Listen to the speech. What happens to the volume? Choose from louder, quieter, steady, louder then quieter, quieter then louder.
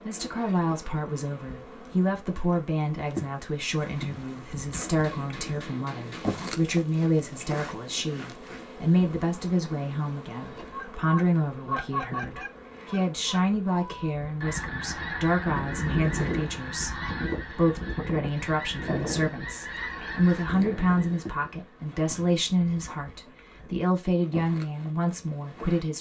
steady.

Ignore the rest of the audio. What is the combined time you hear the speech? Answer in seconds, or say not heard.
26 s.